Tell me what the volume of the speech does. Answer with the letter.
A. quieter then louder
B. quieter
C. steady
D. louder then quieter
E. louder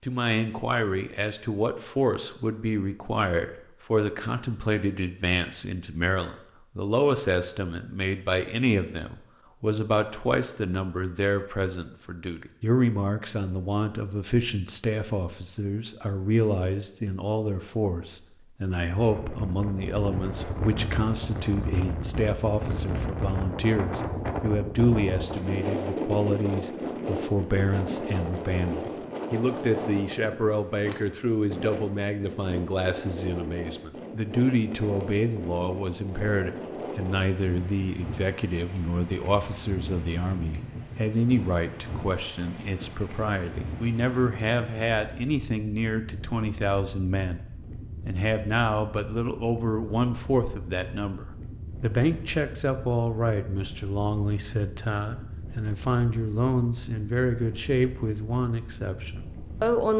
C.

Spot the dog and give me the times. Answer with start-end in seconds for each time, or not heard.
not heard.